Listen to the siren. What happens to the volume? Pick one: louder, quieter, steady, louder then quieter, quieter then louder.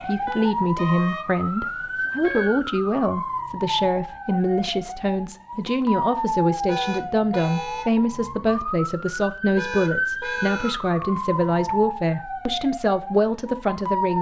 steady.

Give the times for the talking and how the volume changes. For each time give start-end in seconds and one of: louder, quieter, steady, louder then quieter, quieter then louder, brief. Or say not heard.
0.1-14.1 steady.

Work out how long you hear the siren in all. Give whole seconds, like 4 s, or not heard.
14 s.